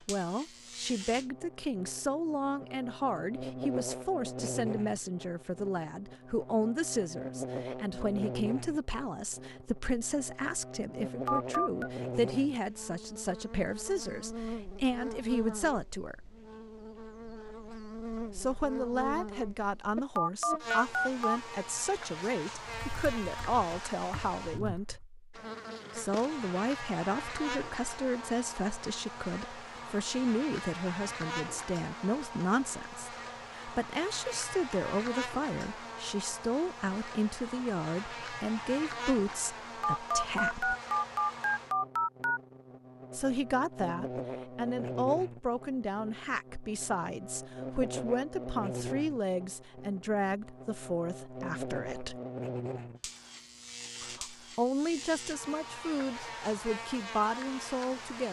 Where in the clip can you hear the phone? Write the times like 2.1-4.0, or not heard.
11.2-11.9, 20.1-21.4, 39.8-42.4.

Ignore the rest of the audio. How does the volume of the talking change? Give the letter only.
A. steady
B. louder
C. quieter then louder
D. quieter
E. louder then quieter
A.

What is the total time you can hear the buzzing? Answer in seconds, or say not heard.
58 s.